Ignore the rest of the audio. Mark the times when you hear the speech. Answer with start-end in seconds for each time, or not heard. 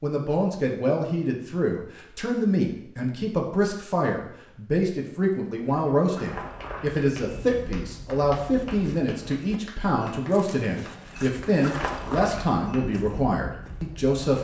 0.0-14.3.